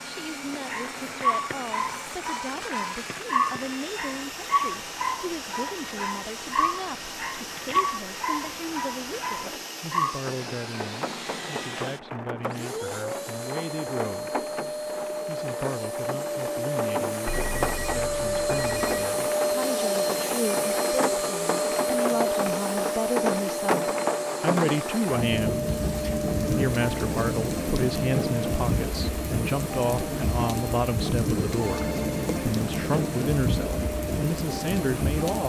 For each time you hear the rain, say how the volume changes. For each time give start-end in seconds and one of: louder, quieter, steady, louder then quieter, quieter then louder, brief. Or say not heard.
0.0-35.4 louder.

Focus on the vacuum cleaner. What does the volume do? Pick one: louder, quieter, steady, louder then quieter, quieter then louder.
louder then quieter.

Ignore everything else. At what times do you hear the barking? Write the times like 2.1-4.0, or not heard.
0.7-10.2.